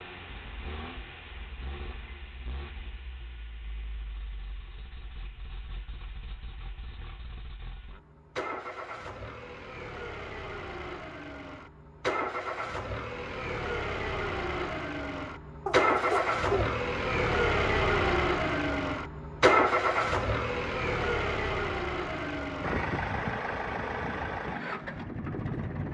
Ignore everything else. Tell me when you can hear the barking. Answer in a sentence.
The barking can be heard from 15.7 to 16.8 s.